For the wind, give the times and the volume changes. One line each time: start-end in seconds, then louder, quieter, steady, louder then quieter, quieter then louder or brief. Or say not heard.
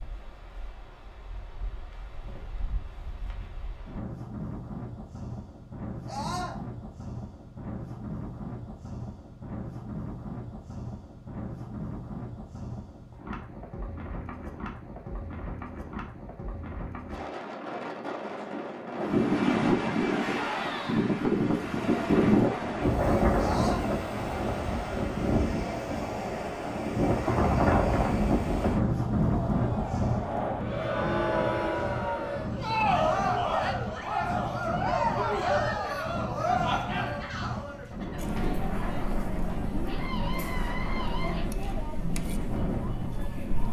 0.0-43.6 louder then quieter.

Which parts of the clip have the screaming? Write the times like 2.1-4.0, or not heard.
6.0-6.6, 23.4-23.9, 39.9-41.5.